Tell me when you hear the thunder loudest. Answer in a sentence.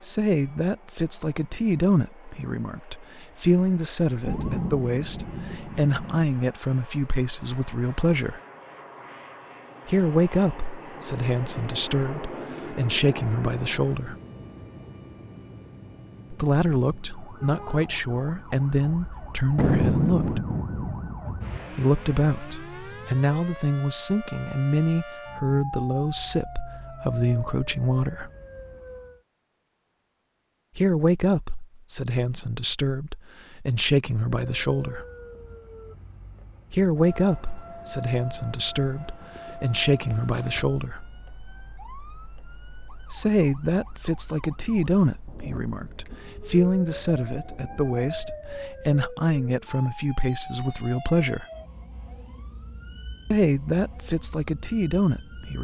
The volume of the thunder peaks at 20 seconds.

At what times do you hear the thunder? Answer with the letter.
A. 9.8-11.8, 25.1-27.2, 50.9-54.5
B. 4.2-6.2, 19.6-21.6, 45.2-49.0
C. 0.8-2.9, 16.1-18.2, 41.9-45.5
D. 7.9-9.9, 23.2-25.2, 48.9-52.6
B.